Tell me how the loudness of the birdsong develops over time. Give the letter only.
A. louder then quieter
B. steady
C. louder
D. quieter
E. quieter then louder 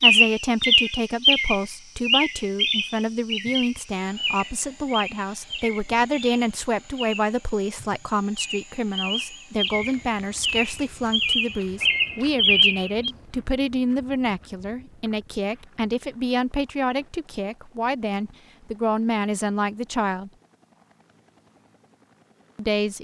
E.